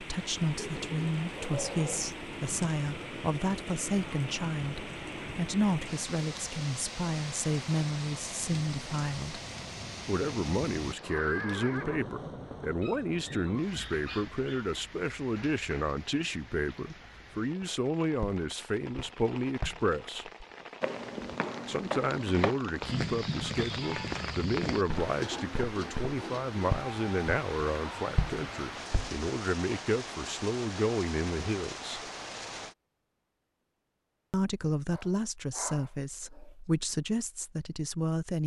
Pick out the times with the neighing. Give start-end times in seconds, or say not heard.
10.8-12.6.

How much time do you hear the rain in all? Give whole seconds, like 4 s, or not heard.
33 s.